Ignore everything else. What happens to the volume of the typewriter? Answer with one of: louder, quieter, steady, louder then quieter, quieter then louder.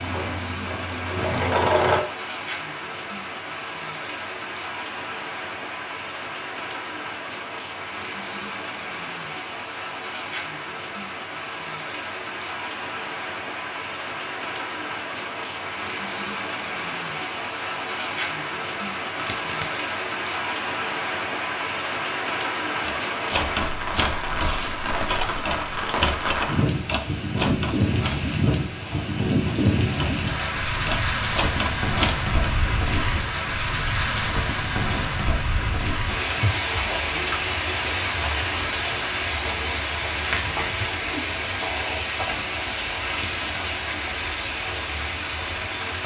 quieter then louder.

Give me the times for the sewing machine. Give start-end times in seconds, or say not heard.
0.0-2.0.